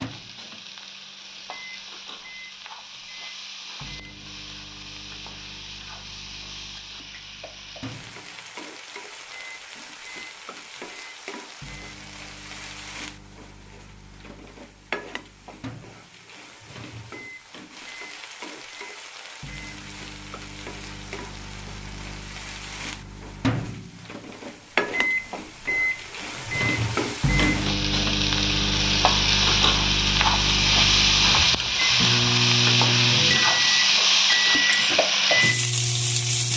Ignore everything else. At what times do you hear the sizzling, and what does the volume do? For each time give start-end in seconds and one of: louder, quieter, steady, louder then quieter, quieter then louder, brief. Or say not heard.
0.0-36.5 louder.